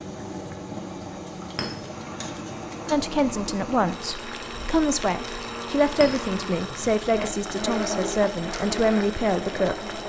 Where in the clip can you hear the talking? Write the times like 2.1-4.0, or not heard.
2.9-9.9.